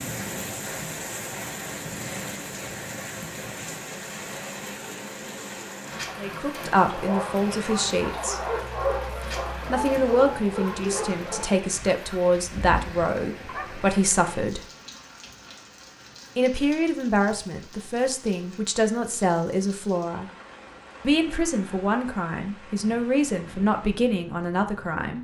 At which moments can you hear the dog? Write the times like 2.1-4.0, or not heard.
6.8-13.9.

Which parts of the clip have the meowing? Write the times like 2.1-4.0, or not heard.
not heard.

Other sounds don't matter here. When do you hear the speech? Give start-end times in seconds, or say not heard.
6.2-8.4, 9.7-14.7, 16.4-20.3, 21.0-25.1.